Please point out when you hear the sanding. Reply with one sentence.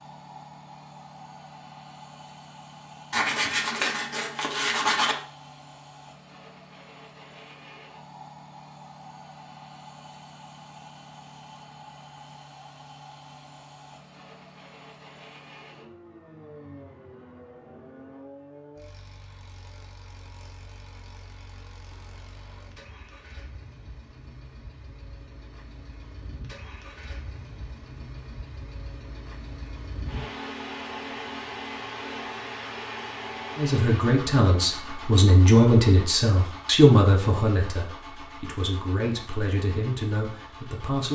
The sanding can be heard from 3.1 to 5.2 s.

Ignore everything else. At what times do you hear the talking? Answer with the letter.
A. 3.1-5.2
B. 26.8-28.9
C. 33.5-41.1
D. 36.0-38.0
C.